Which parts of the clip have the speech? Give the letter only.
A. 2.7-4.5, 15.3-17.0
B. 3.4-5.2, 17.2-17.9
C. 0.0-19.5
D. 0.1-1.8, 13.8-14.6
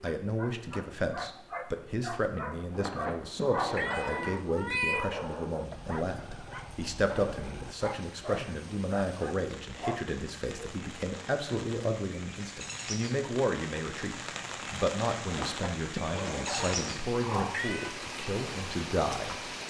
C.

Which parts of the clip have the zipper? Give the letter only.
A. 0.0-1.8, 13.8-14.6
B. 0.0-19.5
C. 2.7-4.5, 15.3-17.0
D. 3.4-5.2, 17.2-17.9
C.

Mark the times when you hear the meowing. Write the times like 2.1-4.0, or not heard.
3.4-5.2, 17.2-17.9.